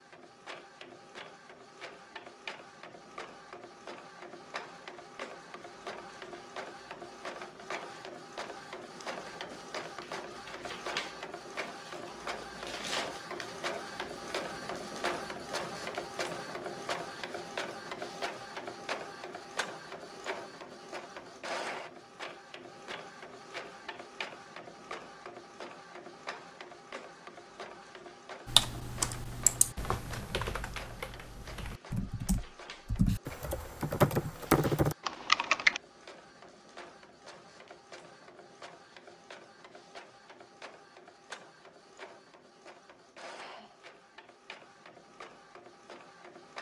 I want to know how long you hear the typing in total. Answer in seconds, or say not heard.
7 s.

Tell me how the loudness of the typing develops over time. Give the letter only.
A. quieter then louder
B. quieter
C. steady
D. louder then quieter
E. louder
A.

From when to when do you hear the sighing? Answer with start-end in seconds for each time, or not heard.
43.4-43.9.